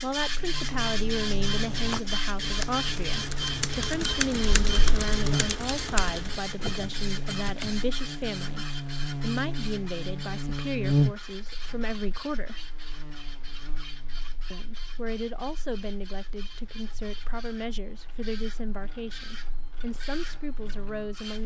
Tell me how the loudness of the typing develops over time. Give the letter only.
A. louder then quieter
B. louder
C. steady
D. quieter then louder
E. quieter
A.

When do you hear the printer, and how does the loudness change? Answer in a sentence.
The printer can be heard from 0.0 to 21.4 s, getting quieter.